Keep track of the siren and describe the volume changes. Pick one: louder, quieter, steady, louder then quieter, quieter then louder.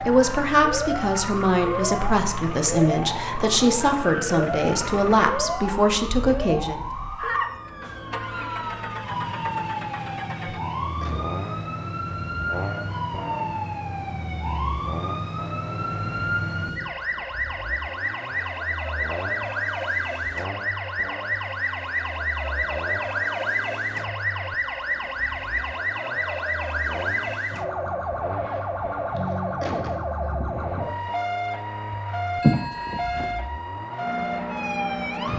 steady.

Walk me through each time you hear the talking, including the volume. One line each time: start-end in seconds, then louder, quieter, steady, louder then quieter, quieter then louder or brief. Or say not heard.
0.1-6.8 steady.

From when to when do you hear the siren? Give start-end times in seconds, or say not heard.
0.0-35.3.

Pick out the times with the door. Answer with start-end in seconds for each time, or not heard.
not heard.